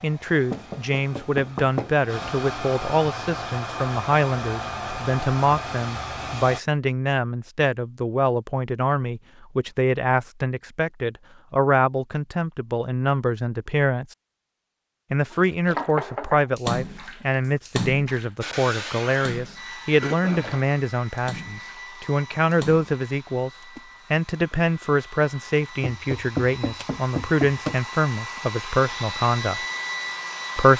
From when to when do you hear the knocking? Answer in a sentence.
The knocking can be heard from 0.5 to 1.9 s, from 15.3 to 16.4 s and from 25.8 to 27.8 s.